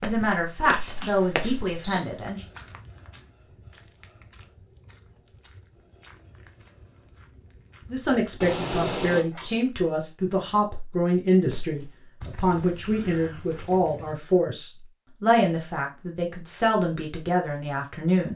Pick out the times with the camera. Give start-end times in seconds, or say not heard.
0.7-2.0, 8.4-9.7, 12.8-13.7.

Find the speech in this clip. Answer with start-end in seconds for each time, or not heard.
0.0-2.4, 7.9-18.3.